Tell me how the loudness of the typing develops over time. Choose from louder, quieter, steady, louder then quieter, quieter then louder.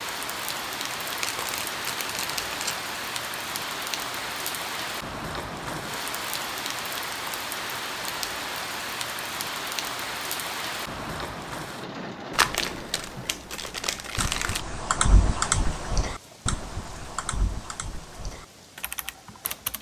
quieter.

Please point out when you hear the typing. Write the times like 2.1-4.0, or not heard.
14.2-19.7.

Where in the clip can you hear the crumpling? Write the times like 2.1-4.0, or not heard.
1.0-2.8, 12.3-14.7.